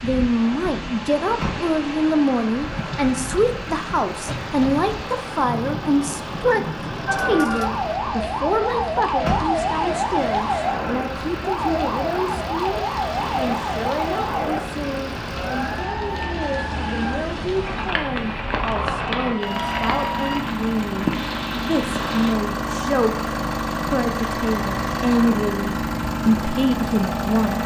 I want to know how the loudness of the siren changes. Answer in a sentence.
The volume of the siren goes down.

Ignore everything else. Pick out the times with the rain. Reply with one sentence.
The rain can be heard from 0.0 to 22.4 s.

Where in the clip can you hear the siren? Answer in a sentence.
You can hear the siren from 7.0 to 20.4 s.